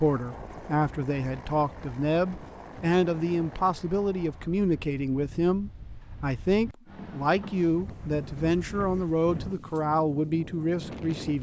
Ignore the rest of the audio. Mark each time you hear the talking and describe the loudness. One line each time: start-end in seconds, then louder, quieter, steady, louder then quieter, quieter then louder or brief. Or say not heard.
0.0-11.3 steady.